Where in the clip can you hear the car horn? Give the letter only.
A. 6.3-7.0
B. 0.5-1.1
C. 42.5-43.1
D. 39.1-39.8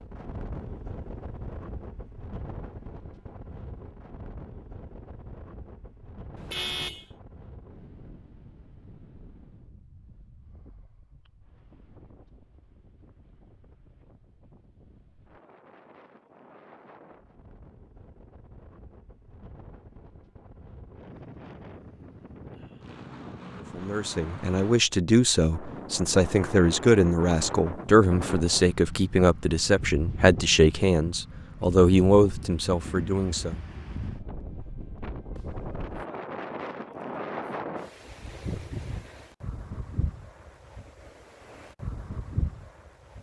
A.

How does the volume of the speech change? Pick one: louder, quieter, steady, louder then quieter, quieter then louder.
steady.